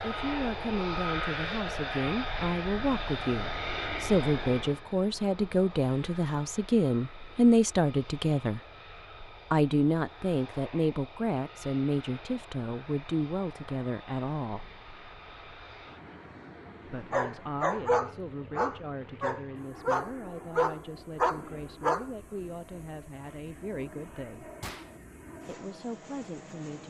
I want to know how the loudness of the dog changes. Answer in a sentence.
The loudness of the dog stays about the same.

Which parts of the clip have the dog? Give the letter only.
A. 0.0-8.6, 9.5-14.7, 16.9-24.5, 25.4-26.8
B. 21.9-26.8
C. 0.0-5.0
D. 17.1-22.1
D.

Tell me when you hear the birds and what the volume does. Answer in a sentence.
The birds can't be heard in this clip.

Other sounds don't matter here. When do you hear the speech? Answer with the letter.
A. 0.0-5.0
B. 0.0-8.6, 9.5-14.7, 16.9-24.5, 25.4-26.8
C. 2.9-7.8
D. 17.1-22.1
B.